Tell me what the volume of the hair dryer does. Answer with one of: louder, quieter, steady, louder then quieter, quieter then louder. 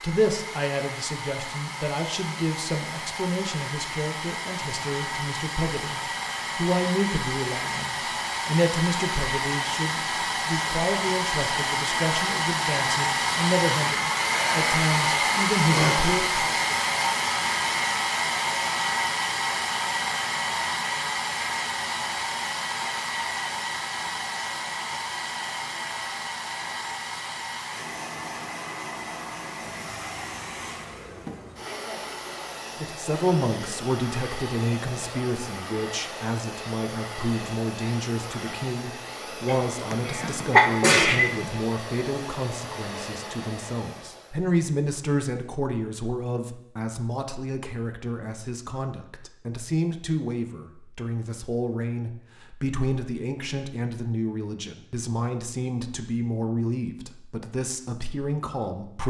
louder then quieter.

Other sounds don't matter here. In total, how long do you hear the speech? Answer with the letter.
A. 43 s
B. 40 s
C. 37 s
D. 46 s
A.